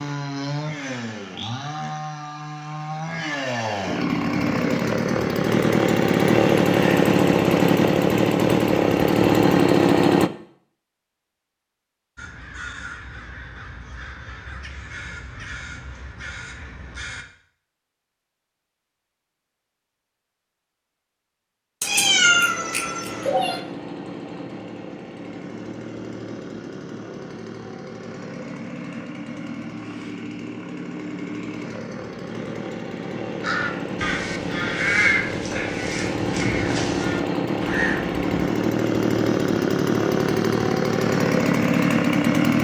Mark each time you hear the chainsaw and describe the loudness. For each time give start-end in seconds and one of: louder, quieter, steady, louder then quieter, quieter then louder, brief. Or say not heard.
0.0-10.3 louder
21.9-42.6 louder.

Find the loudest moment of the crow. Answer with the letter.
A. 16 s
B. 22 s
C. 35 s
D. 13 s
C.